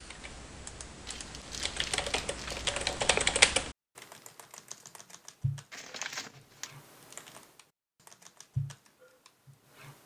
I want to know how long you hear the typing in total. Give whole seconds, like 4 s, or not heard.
10 s.